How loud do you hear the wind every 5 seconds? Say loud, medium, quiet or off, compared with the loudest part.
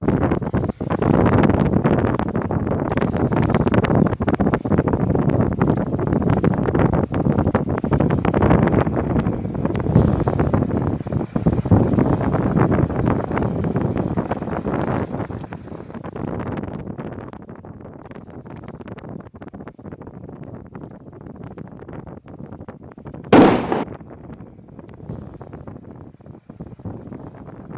loud, loud, loud, quiet, quiet, quiet.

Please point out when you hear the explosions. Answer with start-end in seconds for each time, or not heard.
23.3-23.9.